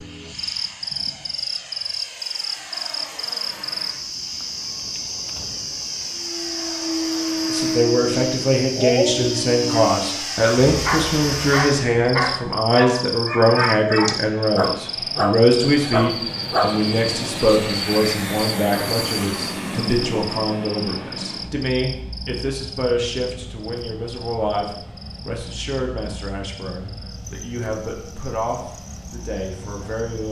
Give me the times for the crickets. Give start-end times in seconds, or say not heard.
0.0-30.2.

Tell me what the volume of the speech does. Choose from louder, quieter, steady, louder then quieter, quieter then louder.
quieter.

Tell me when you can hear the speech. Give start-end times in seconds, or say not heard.
7.5-30.2.